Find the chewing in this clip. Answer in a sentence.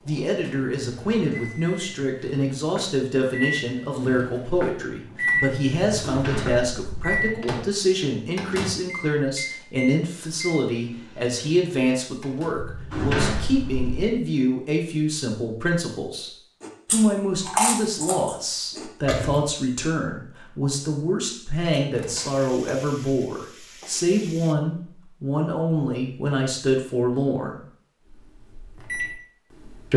You can hear the chewing from 16.6 to 19.4 s.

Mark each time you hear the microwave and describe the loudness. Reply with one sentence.
You can hear the microwave from 0.0 to 12.6 s, getting louder then quieter; and briefly from 28.1 to 29.9 s.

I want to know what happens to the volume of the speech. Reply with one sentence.
The loudness of the speech stays about the same.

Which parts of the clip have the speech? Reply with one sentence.
The speech can be heard from 0.1 to 16.3 s and from 16.9 to 27.6 s.